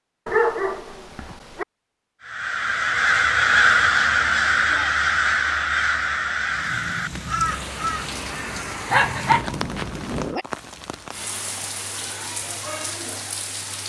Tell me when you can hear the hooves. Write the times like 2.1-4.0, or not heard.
not heard.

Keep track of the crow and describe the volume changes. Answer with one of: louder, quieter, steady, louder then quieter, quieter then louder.
quieter.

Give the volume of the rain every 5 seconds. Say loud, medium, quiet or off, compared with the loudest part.
off, loud, loud.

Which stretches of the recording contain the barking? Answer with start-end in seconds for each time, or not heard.
0.2-1.6, 8.9-10.4.